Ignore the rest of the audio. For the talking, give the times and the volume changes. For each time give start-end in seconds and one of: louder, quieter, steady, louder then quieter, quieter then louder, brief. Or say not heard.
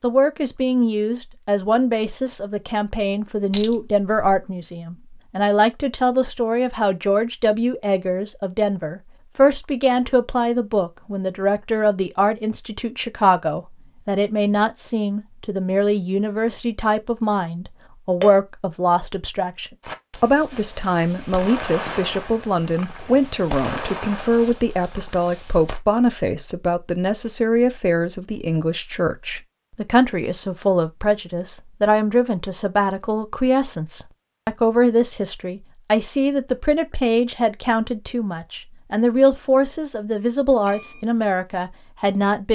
0.0-42.5 steady.